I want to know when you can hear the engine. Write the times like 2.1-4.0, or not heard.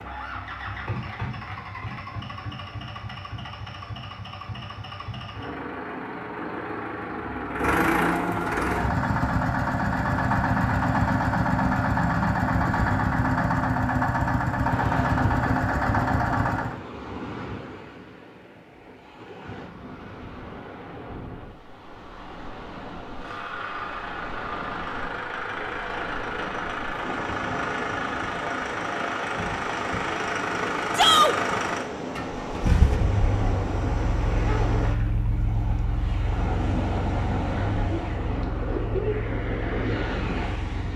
0.0-16.8, 23.1-40.9.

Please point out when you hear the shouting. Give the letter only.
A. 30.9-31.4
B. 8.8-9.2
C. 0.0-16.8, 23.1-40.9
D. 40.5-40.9
A.